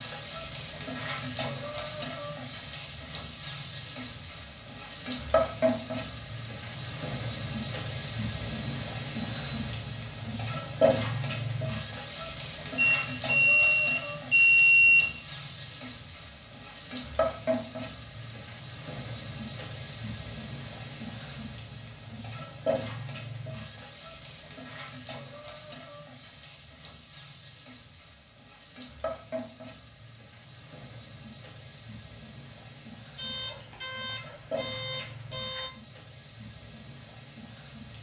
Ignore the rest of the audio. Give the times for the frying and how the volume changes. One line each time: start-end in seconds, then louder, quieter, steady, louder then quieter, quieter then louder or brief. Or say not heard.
0.0-37.9 quieter.